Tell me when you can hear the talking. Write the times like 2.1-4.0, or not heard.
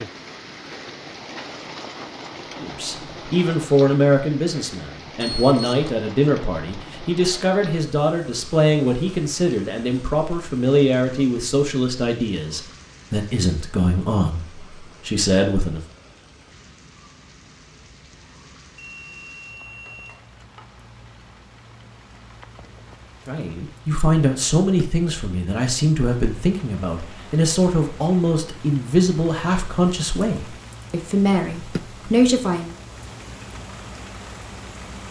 2.6-15.8, 23.2-32.8.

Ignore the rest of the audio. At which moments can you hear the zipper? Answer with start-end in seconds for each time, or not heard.
not heard.